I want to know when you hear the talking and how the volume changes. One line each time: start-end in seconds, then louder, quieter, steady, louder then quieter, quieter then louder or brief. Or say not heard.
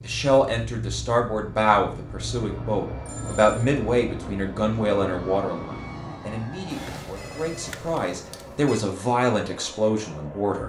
0.0-10.6 quieter then louder.